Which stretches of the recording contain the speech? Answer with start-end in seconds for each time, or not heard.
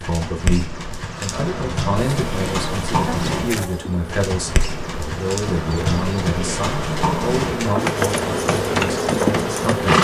0.0-9.9.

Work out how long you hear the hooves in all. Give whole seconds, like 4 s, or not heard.
10 s.